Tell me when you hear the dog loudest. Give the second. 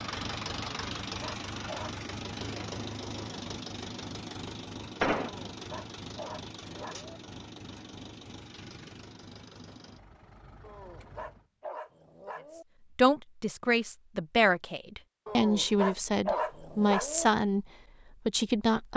16 s.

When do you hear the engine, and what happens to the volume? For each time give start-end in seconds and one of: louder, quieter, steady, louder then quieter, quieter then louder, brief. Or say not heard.
0.0-11.5 quieter.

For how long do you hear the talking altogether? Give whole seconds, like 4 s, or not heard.
5 s.